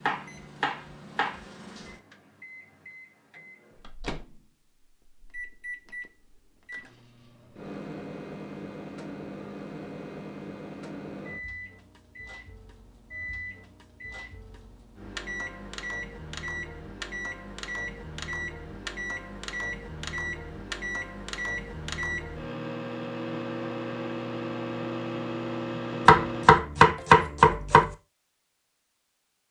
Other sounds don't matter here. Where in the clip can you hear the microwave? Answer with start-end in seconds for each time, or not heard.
0.0-26.6.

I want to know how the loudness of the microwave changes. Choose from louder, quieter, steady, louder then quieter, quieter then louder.
louder.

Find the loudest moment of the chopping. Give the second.
27 s.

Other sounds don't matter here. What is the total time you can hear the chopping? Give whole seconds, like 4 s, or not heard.
3 s.